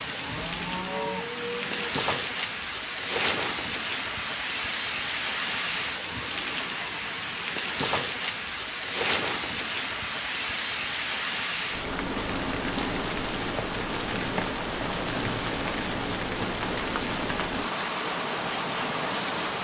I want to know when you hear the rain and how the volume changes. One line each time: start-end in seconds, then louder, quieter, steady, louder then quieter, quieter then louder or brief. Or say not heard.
0.0-19.6 steady.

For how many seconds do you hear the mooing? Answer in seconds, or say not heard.
2 s.